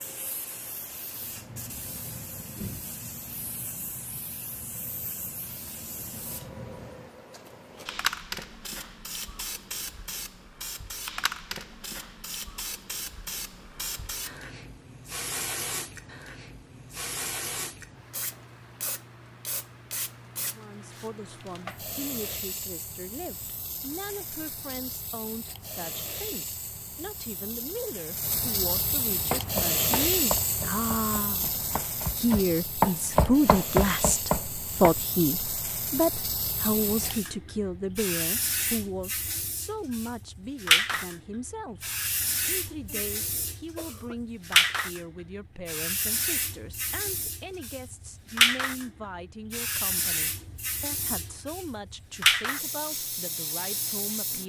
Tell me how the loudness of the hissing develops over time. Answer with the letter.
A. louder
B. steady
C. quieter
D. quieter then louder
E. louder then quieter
A.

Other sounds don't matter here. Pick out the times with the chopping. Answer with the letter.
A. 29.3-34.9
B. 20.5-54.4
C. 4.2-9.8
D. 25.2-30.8
A.